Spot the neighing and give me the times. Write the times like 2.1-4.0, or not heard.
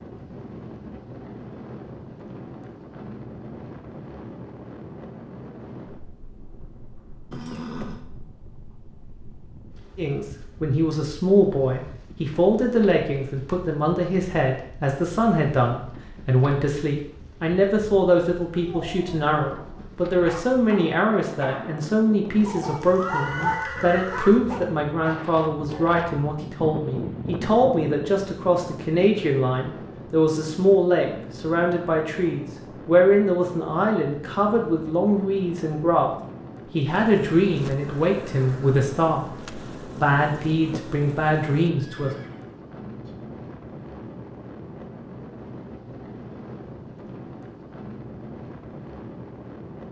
7.3-8.0, 22.9-24.4, 41.8-43.1.